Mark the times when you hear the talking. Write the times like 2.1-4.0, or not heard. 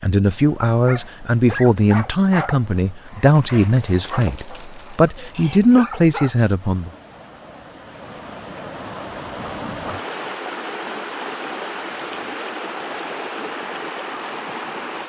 0.0-6.9.